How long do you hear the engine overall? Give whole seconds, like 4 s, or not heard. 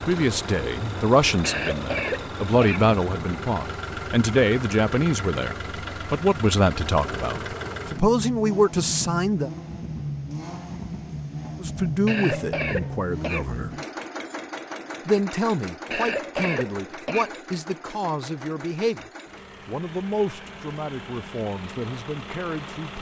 23 s.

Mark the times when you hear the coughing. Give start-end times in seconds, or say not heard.
1.4-3.0, 12.1-13.4, 15.9-17.4.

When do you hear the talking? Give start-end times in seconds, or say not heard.
0.1-9.5, 11.6-13.7, 15.1-22.9.